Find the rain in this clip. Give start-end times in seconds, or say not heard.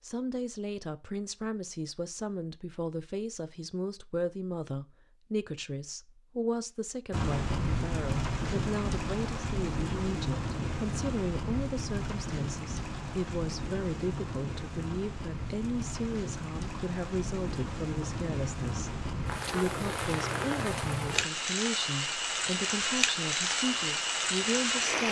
7.1-25.0.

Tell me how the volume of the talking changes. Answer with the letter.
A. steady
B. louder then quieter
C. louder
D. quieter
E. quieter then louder
A.